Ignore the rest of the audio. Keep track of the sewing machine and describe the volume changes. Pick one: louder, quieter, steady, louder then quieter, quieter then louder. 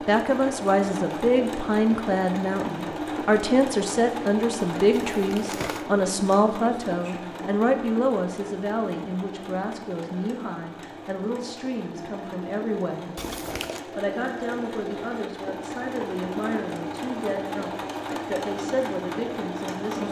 quieter then louder.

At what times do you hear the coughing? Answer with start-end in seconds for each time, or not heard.
not heard.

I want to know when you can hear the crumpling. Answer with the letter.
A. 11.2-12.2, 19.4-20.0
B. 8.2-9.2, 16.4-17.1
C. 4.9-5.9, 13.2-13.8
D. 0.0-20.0
C.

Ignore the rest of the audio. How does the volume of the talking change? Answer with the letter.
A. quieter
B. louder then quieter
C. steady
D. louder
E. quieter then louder
A.